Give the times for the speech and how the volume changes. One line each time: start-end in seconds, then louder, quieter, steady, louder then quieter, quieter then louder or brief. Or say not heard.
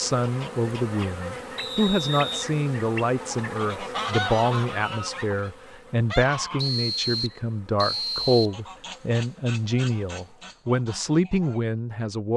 0.0-12.3 steady.